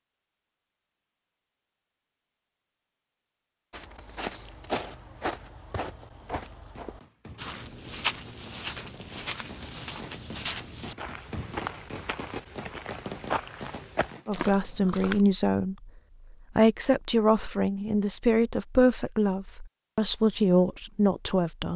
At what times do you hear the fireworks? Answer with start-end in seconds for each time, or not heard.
6.3-14.5.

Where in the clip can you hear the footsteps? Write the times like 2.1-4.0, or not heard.
3.7-15.2.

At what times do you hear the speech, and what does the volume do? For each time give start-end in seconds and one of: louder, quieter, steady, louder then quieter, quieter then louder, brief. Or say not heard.
14.2-15.9 brief
16.6-21.7 steady.